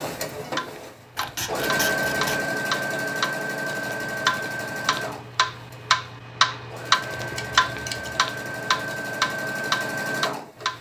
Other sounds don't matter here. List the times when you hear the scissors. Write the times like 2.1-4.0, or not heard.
1.1-2.5, 7.2-8.2.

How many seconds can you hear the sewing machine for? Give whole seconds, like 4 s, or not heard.
11 s.